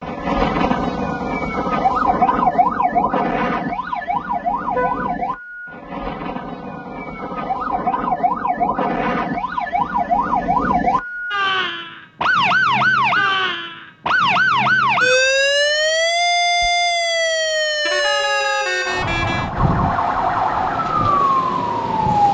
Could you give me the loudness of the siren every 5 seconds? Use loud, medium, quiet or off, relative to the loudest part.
loud, medium, loud, loud, loud.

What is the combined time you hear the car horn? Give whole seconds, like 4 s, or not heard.
2 s.